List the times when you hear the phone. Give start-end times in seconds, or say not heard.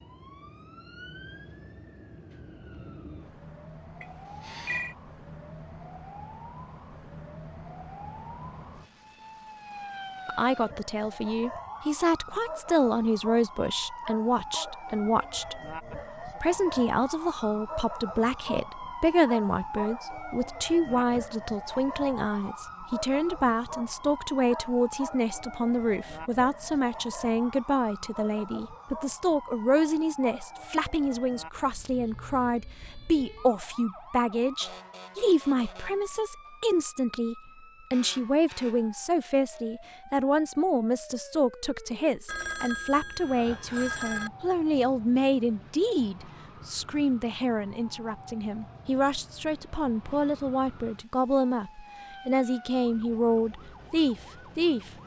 4.0-5.0, 42.2-44.3.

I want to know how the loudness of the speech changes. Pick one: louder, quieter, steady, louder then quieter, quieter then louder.
steady.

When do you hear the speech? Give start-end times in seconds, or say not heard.
10.2-54.9.